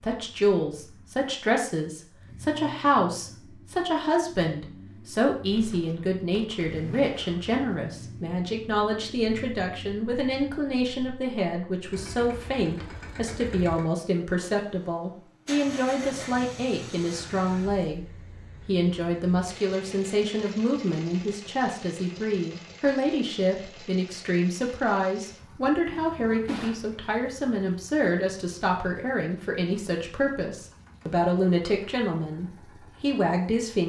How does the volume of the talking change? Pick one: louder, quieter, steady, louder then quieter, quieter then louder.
steady.